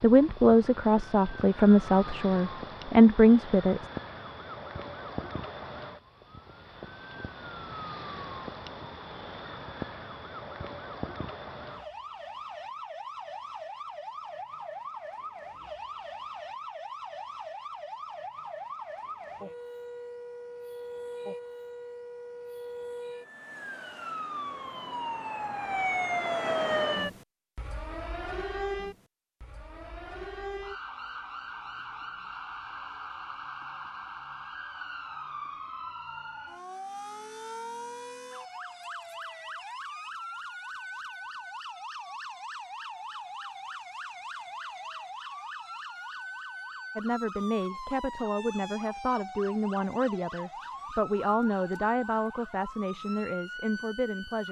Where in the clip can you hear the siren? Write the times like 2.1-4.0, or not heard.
0.0-54.4.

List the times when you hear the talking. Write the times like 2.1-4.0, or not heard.
0.0-3.9, 47.0-54.4.